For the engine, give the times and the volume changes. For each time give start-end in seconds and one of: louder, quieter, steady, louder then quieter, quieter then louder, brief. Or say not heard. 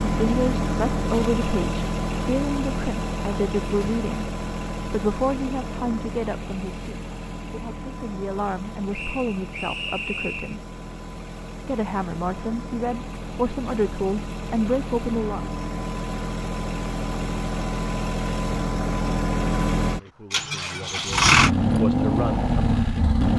0.0-23.3 quieter then louder.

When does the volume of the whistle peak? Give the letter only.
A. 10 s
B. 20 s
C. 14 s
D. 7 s
A.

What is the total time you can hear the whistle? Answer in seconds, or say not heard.
2 s.